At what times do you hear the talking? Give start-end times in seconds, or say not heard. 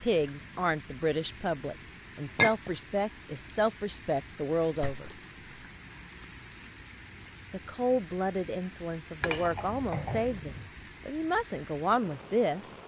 0.0-5.1, 7.5-12.7.